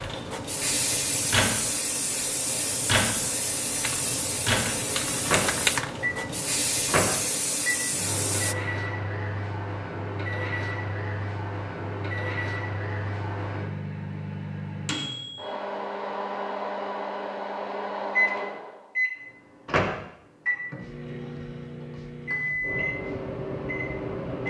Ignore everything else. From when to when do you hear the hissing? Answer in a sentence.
The hissing can be heard from 0.0 to 8.6 s.